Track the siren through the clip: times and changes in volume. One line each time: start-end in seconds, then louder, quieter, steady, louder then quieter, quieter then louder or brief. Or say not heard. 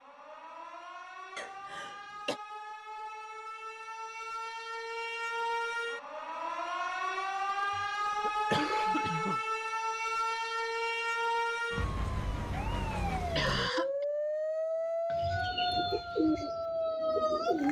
0.0-17.6 louder.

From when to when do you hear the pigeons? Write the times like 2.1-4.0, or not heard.
15.1-17.6.